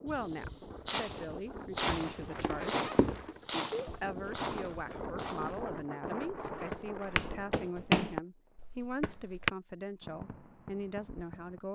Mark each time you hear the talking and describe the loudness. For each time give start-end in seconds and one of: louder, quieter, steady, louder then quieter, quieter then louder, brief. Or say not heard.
0.0-2.9 brief
3.8-11.7 steady.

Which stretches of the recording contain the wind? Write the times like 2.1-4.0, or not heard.
0.0-7.2.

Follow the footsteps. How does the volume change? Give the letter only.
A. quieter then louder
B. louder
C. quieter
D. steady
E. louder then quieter
A.